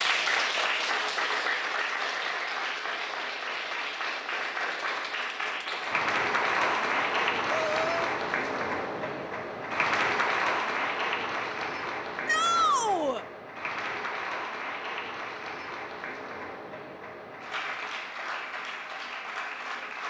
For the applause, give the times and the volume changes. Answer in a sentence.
The applause can be heard from 0.0 to 20.0 s, getting quieter.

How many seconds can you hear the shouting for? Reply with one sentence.
You can hear the shouting for 2 seconds altogether.